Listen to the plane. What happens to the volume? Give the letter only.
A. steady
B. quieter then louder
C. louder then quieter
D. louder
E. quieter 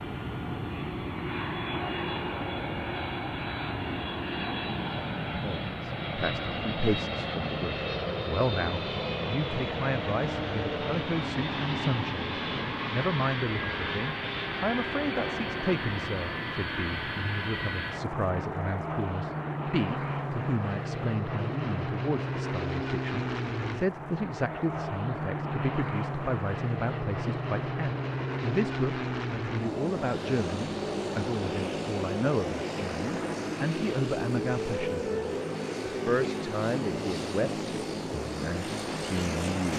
A.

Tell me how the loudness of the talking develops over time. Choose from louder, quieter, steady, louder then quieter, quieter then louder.
steady.